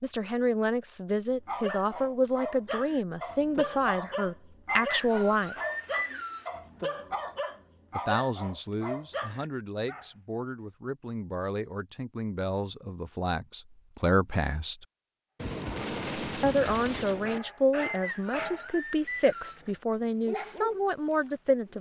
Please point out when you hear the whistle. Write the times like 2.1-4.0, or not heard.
4.7-6.5, 17.8-19.6.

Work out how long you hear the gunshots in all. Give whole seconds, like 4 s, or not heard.
2 s.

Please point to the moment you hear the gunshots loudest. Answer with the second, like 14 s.
16 s.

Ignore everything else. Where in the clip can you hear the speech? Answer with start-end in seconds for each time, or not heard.
0.0-5.6, 8.0-14.8, 16.4-21.7.